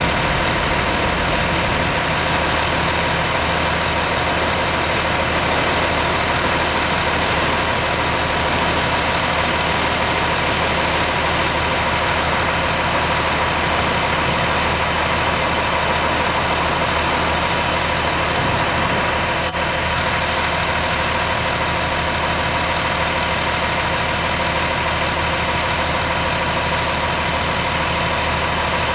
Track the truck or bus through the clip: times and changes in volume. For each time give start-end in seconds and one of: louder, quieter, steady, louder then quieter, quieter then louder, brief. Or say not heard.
0.0-28.8 steady.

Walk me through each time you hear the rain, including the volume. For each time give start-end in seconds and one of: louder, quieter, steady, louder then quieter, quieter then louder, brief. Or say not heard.
0.0-19.4 steady.